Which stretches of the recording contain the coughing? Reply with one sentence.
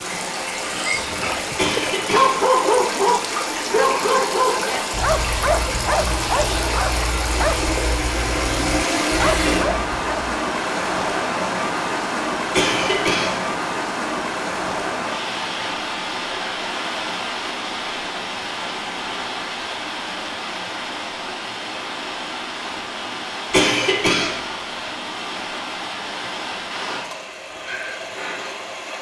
You can hear the coughing from 1.6 to 2.3 s, from 12.5 to 13.4 s and from 23.5 to 24.4 s.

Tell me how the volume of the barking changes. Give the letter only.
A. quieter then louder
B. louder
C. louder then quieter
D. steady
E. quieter
E.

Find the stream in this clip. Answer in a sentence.
You can hear the stream from 0.0 to 28.9 s.